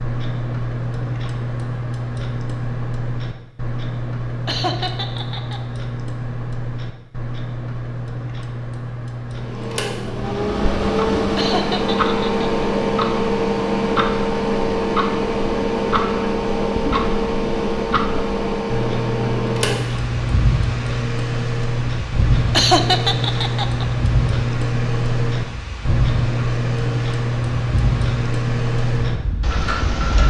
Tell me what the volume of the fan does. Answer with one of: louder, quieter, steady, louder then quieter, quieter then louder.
quieter.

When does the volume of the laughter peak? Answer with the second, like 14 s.
23 s.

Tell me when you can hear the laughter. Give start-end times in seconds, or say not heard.
4.5-5.6, 11.3-12.4, 22.5-23.9.